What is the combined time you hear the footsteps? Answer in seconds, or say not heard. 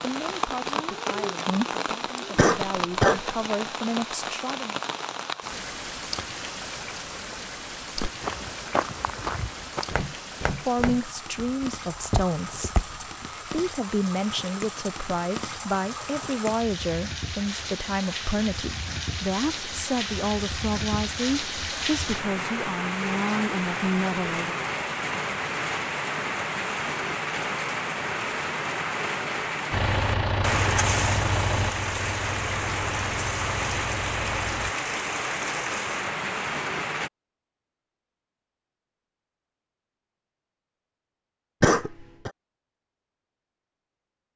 5 s.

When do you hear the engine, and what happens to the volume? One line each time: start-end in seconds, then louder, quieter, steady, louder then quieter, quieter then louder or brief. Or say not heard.
29.7-34.8 quieter.